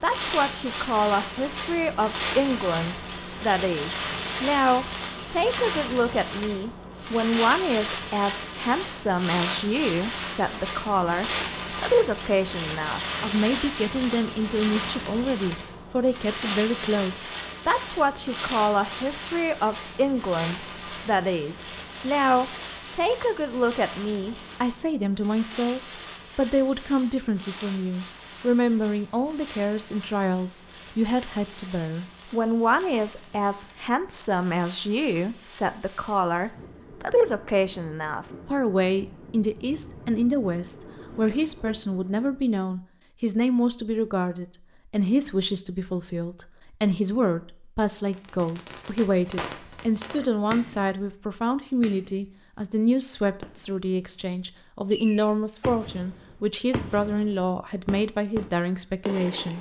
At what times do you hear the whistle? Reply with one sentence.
You can't hear the whistle here.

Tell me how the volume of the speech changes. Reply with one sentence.
The volume of the speech stays about the same.